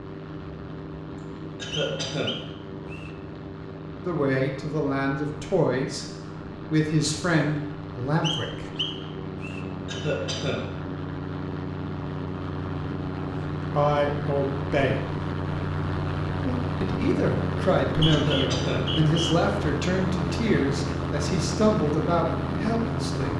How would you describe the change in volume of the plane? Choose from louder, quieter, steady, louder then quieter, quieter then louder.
louder.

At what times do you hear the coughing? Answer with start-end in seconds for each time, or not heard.
1.6-2.5, 9.8-10.7, 18.1-18.9.